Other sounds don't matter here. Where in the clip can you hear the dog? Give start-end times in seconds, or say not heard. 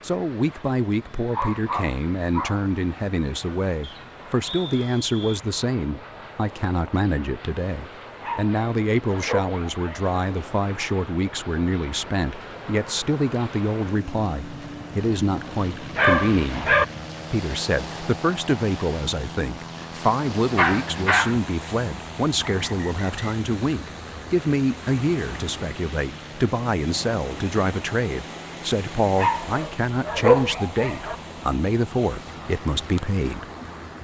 1.3-2.7, 8.2-10.2, 15.9-16.9, 20.6-21.4, 29.1-31.1.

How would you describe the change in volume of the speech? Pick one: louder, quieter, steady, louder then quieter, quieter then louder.
steady.